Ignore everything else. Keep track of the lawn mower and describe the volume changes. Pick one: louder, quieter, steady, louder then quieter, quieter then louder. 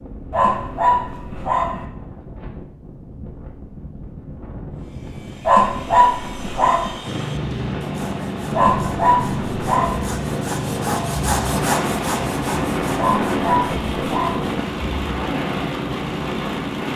steady.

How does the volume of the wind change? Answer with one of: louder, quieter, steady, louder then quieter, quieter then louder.
louder.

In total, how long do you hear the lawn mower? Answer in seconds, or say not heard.
10 s.